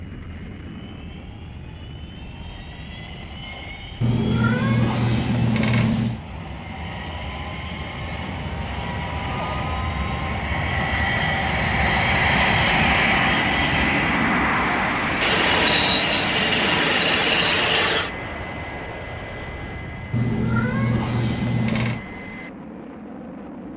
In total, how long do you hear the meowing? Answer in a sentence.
You can hear the meowing for 4 seconds altogether.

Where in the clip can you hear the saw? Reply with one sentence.
The saw can be heard from 15.2 to 18.1 s.